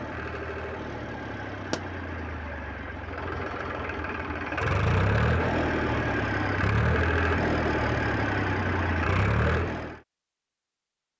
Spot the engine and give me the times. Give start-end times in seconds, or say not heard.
0.0-10.0.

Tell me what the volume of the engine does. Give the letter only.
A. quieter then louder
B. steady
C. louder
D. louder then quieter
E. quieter
C.